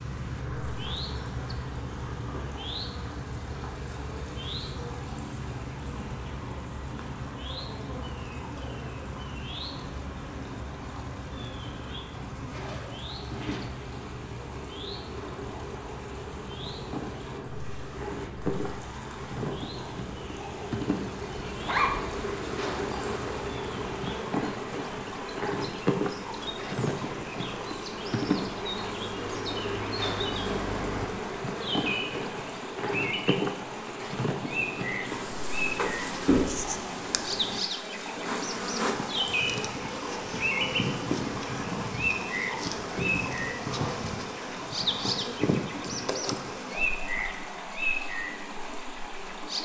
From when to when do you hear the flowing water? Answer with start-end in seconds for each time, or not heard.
0.0-49.6.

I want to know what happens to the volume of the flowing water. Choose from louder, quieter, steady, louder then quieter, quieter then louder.
louder.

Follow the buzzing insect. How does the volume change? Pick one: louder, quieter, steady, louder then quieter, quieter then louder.
louder.